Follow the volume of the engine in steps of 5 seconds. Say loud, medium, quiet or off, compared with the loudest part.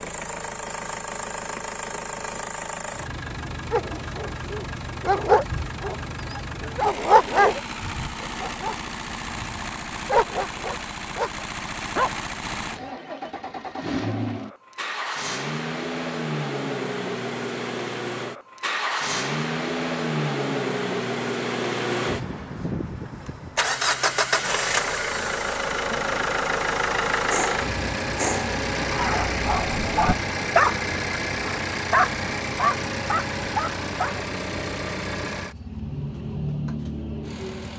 medium, medium, medium, loud, loud, loud, loud, medium.